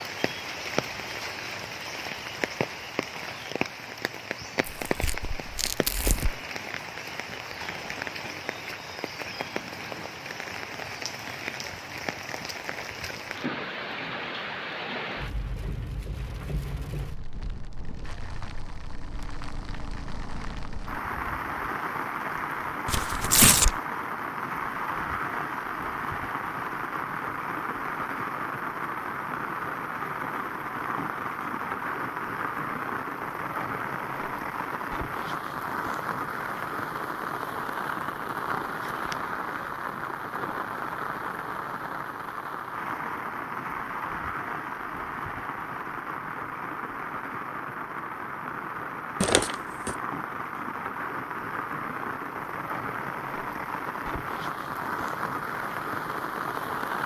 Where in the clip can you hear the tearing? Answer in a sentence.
You can hear the tearing from 4.7 to 6.3 s, from 22.9 to 23.8 s and from 49.2 to 50.0 s.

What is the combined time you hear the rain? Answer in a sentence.
The rain can be heard for 57 seconds in total.